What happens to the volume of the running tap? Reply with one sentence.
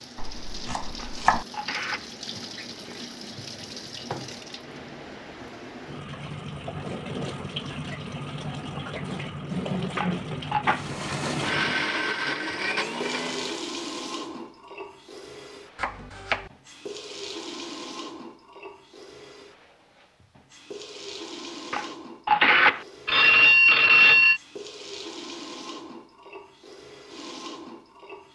The volume of the running tap goes up, then down.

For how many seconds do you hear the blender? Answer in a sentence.
You can hear the blender for 3 seconds altogether.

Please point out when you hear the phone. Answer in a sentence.
The phone can be heard from 0.9 to 2.1 s, from 9.9 to 10.7 s and from 21.7 to 24.4 s.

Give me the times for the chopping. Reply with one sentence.
You can hear the chopping from 0.1 to 1.4 s and from 15.8 to 16.5 s.